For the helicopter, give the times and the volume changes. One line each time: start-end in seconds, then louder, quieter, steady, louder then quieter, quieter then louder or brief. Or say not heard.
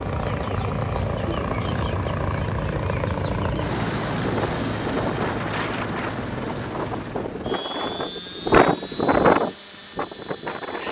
0.0-10.8 quieter.